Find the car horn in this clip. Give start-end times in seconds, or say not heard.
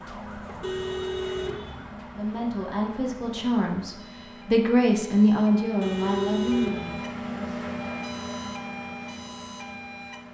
0.6-1.8, 5.8-7.0.